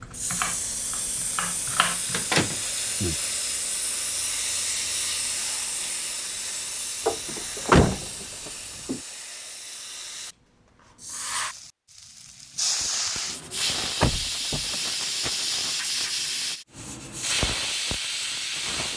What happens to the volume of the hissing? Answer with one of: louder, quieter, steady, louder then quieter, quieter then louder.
quieter then louder.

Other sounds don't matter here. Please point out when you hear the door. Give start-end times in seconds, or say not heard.
2.1-3.1, 7.0-9.0, 14.0-14.8.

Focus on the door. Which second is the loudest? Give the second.
8 s.